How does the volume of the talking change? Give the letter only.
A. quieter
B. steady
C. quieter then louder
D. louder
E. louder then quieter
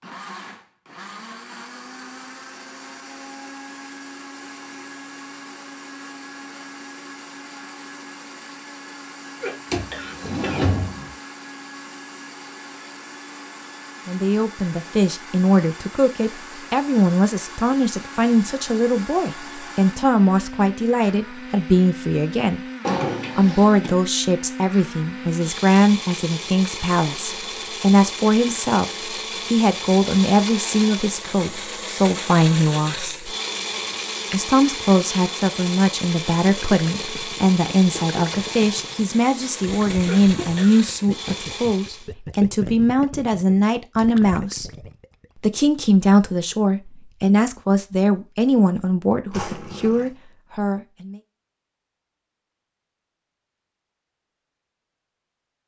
B.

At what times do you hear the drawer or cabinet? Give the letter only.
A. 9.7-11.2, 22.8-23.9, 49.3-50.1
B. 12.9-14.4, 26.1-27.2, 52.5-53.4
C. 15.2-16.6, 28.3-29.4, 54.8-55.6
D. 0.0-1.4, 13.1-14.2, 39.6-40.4
A.